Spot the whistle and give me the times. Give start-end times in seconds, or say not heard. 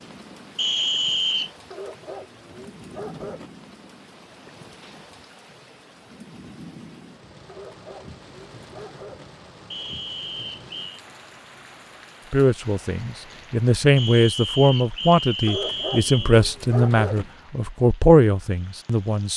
0.6-1.5, 9.7-11.0, 13.9-16.4.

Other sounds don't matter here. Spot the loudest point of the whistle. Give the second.
1 s.